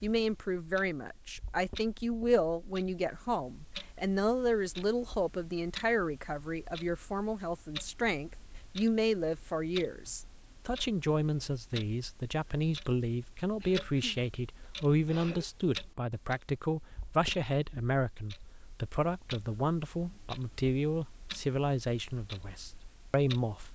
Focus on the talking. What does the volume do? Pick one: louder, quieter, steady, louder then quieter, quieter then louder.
steady.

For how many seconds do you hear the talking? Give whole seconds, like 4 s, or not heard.
24 s.